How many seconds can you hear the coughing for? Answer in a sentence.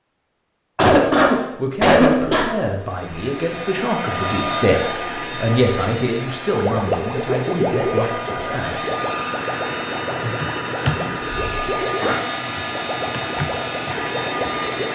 You can hear the coughing for 4 seconds altogether.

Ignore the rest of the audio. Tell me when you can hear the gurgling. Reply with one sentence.
The gurgling can be heard from 6.5 to 14.9 s.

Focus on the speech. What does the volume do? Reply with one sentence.
The volume of the speech goes up, then down.